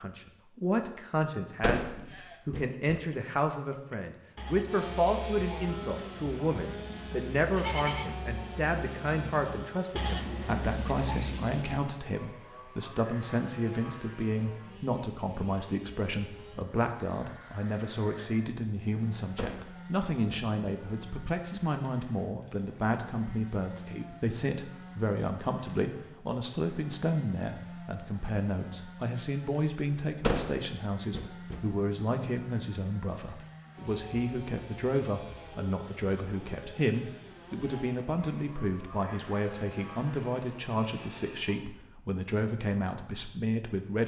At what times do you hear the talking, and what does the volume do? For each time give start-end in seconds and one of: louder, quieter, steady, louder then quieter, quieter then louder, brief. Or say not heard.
0.0-44.0 steady.